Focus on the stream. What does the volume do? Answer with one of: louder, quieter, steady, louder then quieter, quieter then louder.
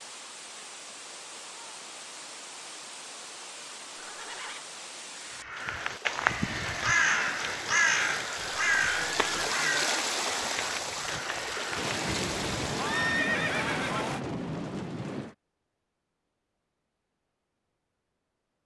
louder.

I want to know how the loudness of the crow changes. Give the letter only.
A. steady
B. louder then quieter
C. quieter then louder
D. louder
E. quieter
E.